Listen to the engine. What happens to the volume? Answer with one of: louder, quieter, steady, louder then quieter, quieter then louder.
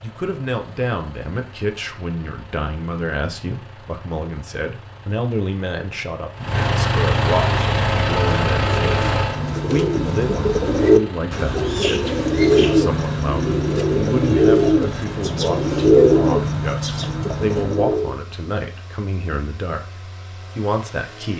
louder then quieter.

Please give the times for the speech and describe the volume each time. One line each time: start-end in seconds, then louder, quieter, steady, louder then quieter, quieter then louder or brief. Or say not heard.
0.0-21.3 steady.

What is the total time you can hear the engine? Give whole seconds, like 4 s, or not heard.
21 s.